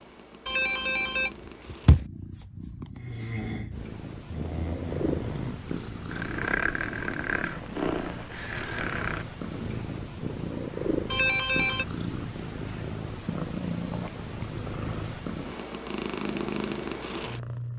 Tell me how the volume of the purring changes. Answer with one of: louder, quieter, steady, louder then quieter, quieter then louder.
louder.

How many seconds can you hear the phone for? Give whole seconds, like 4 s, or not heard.
2 s.